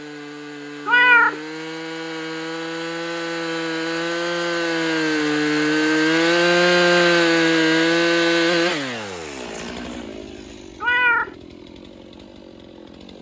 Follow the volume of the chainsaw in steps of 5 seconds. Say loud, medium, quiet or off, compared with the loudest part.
medium, loud, quiet.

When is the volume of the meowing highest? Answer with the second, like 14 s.
1 s.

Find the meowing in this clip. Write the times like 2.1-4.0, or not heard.
0.8-1.4, 10.8-11.3.